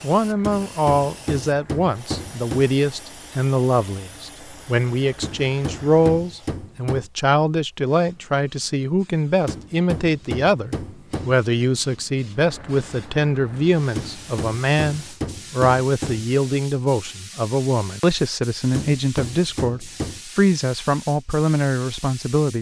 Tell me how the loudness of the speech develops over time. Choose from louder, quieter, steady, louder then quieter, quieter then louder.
steady.